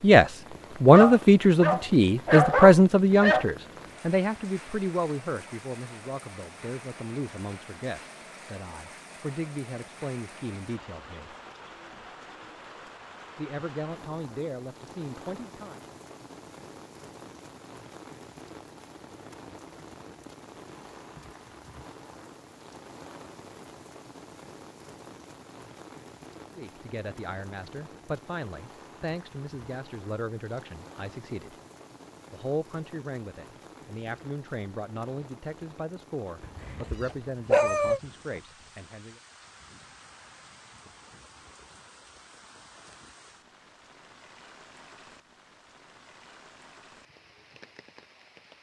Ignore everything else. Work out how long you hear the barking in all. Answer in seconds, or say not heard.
4 s.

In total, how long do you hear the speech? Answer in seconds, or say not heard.
26 s.